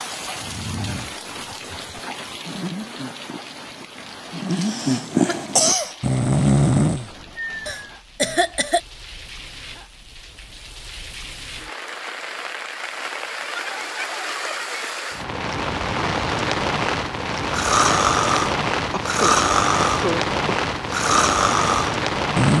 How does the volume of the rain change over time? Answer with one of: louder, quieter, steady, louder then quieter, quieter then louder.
quieter then louder.